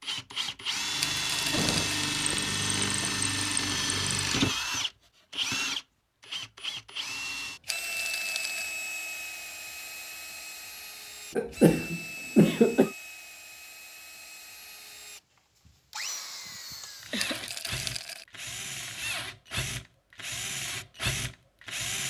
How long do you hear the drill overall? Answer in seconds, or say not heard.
22 s.